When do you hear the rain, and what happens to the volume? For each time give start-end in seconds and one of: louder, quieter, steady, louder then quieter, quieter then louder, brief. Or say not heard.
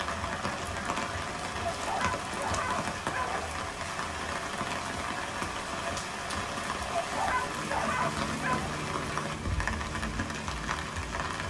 0.0-11.4 steady.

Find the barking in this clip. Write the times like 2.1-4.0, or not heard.
1.6-3.5, 6.9-8.8.